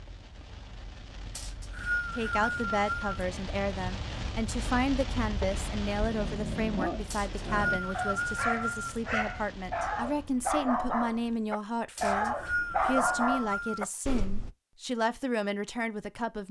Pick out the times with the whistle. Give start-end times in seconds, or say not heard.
1.4-3.1, 7.1-9.0, 11.9-13.8.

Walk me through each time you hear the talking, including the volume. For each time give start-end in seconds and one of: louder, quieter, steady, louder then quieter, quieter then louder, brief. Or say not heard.
2.1-16.4 steady.